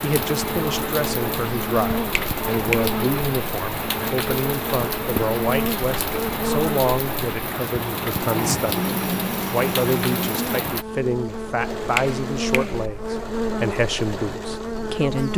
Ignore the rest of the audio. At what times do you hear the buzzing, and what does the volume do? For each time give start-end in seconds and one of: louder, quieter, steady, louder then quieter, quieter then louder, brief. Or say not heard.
0.1-15.3 steady.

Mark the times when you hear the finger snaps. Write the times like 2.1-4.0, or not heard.
2.1-3.0, 11.9-12.8.